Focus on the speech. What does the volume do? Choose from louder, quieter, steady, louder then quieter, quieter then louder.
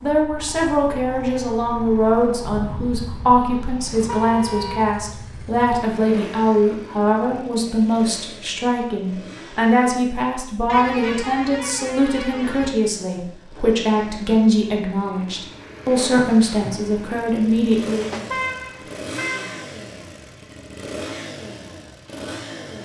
steady.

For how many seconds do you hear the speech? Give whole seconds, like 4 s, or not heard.
18 s.